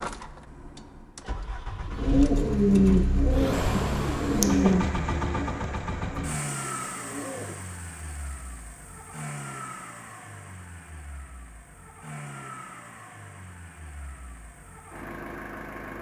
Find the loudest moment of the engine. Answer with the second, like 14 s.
4 s.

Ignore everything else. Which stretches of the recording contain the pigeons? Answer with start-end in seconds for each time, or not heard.
1.9-7.5.